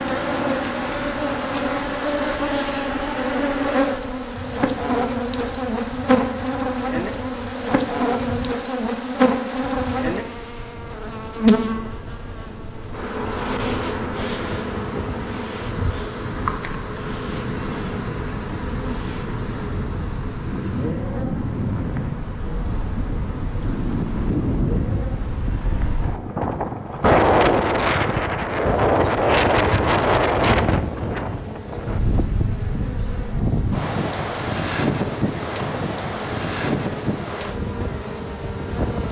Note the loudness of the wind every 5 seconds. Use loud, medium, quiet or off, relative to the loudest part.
quiet, quiet, quiet, quiet, medium, loud, loud, medium.